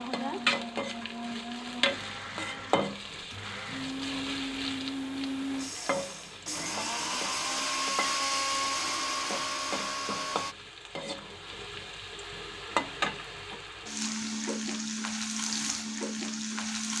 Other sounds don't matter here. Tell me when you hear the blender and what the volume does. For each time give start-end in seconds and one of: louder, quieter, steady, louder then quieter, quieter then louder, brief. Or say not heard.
0.0-10.6 louder.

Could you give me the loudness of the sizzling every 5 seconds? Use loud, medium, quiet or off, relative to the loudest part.
loud, medium, loud, loud.